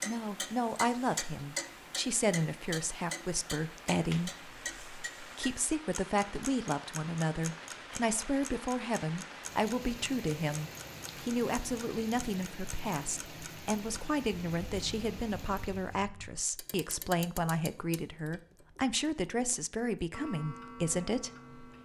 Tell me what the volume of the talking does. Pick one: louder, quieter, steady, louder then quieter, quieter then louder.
steady.